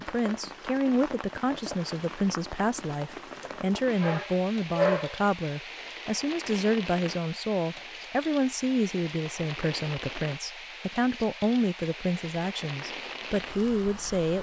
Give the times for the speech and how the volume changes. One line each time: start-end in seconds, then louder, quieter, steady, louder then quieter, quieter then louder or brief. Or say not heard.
0.1-14.3 steady.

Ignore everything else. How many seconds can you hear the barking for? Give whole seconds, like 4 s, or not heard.
2 s.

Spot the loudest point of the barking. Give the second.
5 s.